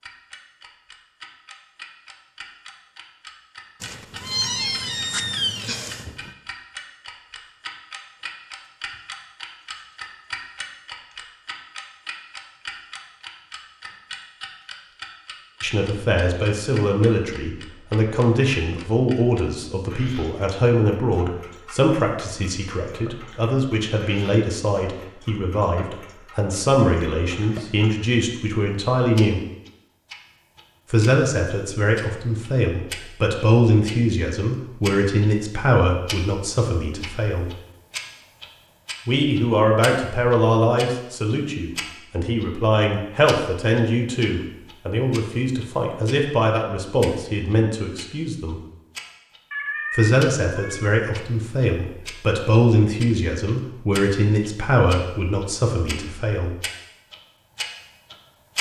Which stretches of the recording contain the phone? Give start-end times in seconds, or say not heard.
not heard.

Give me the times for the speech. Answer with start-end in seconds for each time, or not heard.
15.6-29.4, 30.9-37.5, 39.0-48.6, 49.9-56.5.